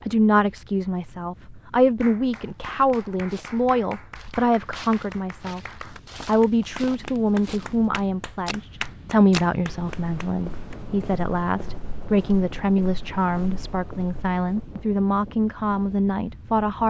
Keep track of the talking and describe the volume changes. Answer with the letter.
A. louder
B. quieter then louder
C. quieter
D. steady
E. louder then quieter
D.